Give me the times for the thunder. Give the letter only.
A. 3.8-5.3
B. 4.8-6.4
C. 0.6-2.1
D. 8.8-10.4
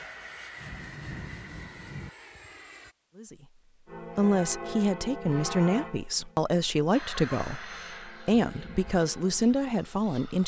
C.